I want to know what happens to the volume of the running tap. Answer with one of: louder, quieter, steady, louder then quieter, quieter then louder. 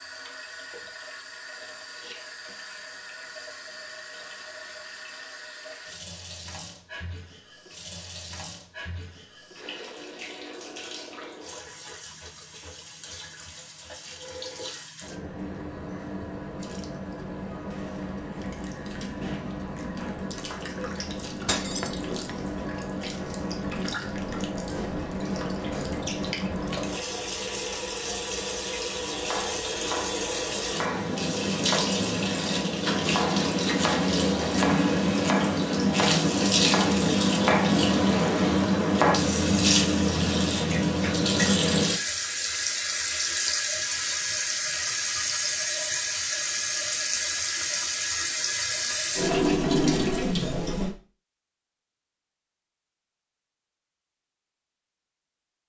louder.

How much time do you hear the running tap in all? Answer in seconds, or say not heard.
51 s.